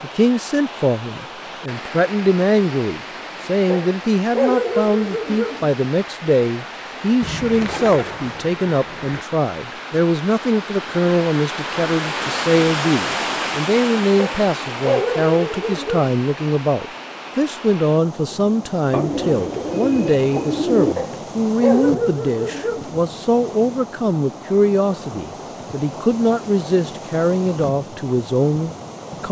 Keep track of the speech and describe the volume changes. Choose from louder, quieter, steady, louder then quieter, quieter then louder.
steady.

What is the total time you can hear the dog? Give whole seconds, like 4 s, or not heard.
6 s.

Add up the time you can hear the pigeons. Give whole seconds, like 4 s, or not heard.
4 s.